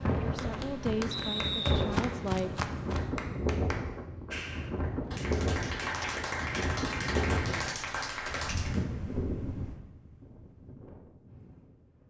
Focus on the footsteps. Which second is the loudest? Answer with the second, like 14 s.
2 s.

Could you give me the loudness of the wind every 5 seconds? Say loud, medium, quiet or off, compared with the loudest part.
loud, loud, quiet.